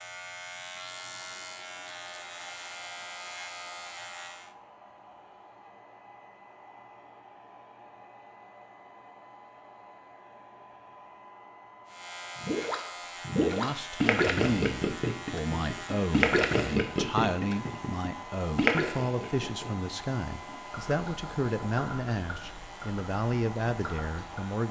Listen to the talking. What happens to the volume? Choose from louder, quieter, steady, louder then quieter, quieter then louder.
steady.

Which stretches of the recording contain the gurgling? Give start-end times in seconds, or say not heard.
12.4-24.4.